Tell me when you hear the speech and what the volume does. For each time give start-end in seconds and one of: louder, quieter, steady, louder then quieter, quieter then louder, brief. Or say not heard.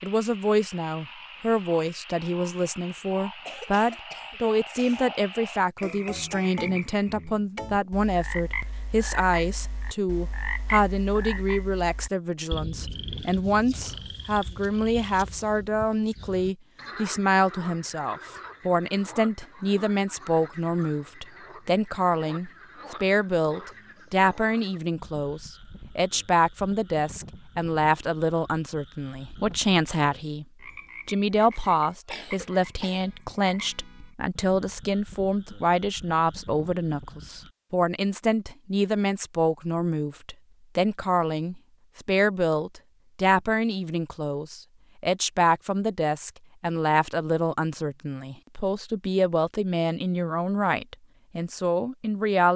0.0-30.4 steady
31.1-52.5 steady.